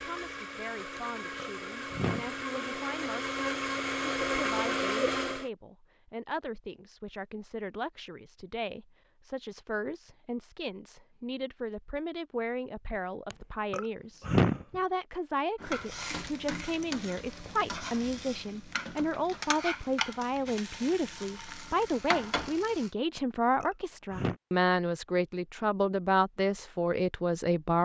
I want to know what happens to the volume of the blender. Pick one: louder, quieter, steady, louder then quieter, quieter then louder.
louder.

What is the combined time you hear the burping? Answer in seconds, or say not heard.
4 s.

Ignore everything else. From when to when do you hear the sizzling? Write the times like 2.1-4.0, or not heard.
15.6-22.9.